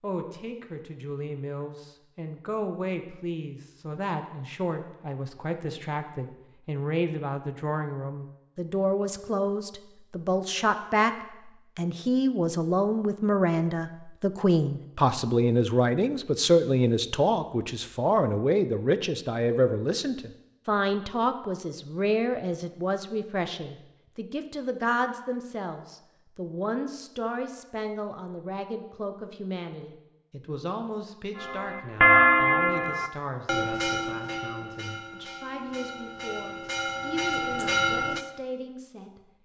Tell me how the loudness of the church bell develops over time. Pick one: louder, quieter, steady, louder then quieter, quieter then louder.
quieter then louder.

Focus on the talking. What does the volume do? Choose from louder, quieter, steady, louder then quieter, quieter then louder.
louder then quieter.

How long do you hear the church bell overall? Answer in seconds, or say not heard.
7 s.